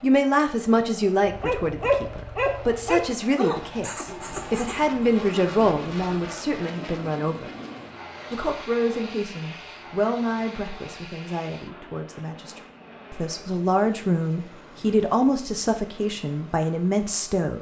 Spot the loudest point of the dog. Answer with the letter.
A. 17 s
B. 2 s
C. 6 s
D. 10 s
B.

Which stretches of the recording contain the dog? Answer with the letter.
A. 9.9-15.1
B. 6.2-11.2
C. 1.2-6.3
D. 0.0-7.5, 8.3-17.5
C.